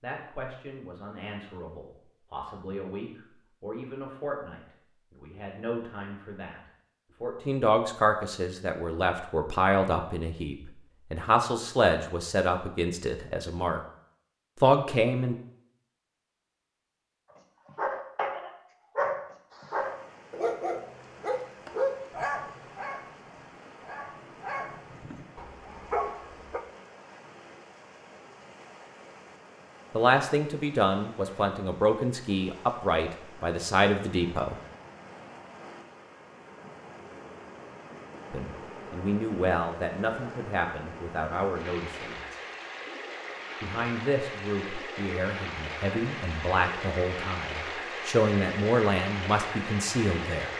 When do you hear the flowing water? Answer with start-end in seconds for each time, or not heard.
19.5-50.5.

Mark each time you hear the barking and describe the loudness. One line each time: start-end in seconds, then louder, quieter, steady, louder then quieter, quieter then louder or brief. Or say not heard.
17.4-26.6 quieter then louder.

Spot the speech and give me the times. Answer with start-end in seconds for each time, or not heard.
0.0-13.8, 14.6-15.3, 29.9-34.6, 38.3-42.4, 43.6-50.5.